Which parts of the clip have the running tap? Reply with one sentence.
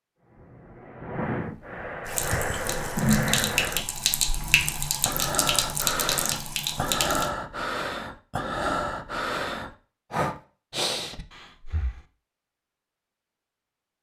You can hear the running tap from 2.0 to 7.3 s.